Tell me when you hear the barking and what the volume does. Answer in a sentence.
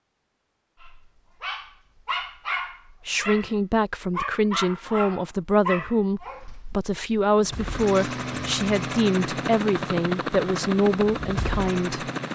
You can hear the barking from 0.8 to 7.0 s, at a steady volume.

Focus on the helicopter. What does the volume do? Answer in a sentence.
The volume of the helicopter stays about the same.